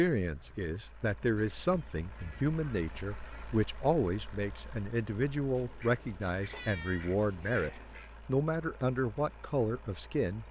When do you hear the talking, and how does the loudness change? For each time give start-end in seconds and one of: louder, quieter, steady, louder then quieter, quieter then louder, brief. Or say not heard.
0.0-10.4 steady.